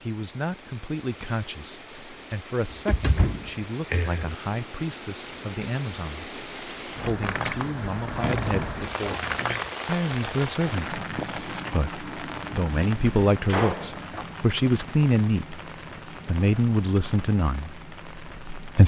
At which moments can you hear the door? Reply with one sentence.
You can hear the door from 2.7 to 4.3 s, from 7.0 to 9.7 s and from 13.2 to 14.2 s.